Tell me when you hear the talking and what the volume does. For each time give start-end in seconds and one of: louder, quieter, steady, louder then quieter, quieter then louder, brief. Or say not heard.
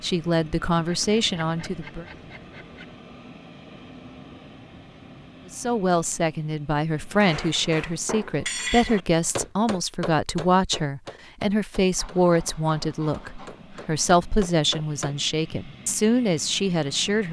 0.0-2.0 brief
5.5-17.2 steady.